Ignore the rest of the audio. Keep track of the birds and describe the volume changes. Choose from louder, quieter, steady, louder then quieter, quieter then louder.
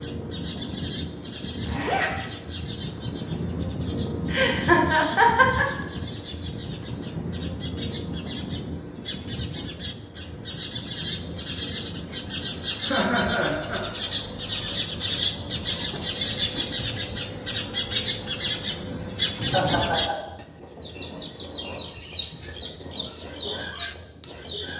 louder.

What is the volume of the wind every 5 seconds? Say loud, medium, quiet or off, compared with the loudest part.
loud, loud, medium, medium, medium.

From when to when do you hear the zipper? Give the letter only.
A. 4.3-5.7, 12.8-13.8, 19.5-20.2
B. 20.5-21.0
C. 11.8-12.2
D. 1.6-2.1
D.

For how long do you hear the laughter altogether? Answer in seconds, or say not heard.
3 s.